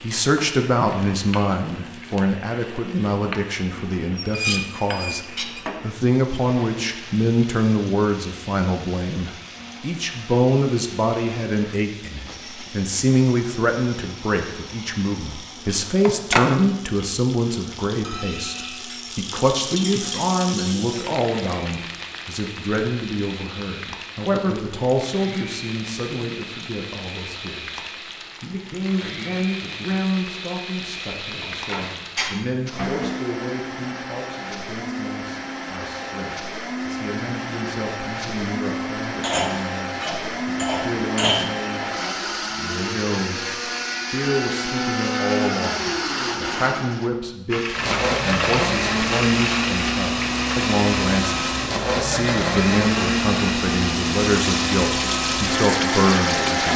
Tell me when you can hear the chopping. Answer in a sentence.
The chopping can't be heard in this clip.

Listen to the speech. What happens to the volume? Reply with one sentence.
The volume of the speech goes down, then up.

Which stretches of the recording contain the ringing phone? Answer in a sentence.
The ringing phone can be heard from 16.1 to 16.5 s and from 31.4 to 31.9 s.